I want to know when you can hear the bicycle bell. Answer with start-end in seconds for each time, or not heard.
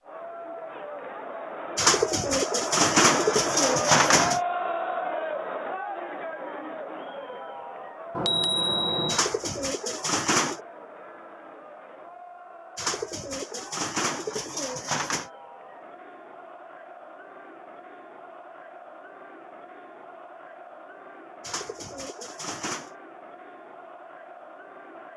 8.2-9.2.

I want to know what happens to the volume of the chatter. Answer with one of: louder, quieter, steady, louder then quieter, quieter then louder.
quieter.